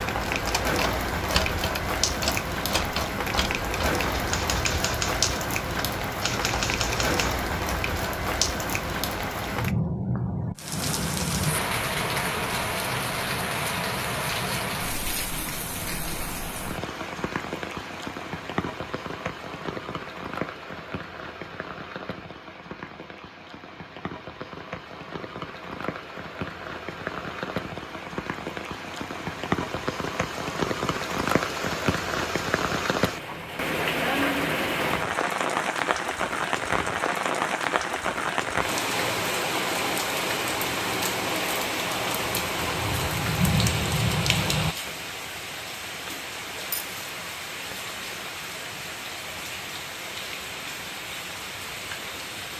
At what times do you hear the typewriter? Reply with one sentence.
You can hear the typewriter from 0.2 to 7.4 s.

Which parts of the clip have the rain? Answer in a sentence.
You can hear the rain from 0.0 to 52.5 s.